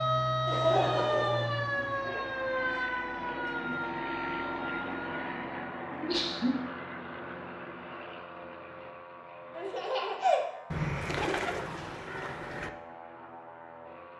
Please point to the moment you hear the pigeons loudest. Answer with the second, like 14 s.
11 s.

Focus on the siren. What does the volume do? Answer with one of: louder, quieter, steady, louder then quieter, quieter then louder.
quieter.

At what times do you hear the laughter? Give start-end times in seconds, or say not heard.
0.5-1.9, 5.9-6.5, 9.6-10.4.